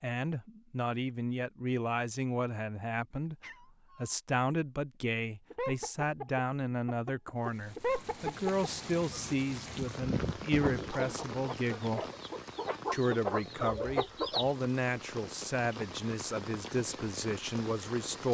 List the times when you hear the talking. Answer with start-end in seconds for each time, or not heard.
0.0-3.4, 4.0-12.0, 12.9-18.2.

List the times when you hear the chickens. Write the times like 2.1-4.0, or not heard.
5.5-14.6.